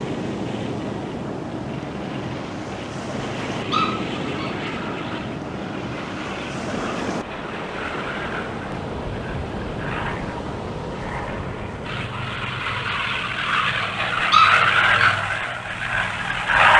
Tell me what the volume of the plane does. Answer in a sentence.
The volume of the plane goes up.